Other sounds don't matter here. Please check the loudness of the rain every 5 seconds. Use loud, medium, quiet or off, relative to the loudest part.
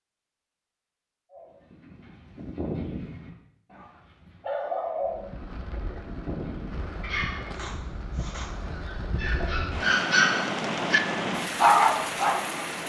off, medium, loud.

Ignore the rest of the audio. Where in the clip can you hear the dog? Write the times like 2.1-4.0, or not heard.
1.3-12.7.